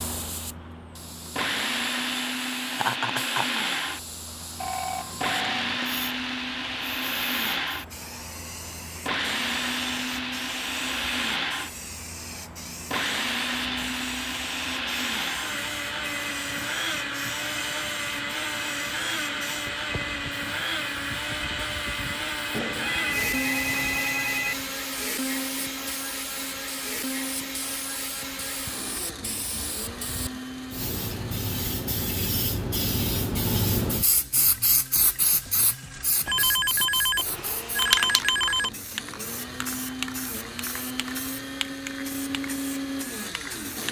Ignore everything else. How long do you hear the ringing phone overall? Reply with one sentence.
You can hear the ringing phone for 6 seconds altogether.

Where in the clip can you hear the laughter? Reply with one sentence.
The laughter can be heard from 2.7 to 3.6 s.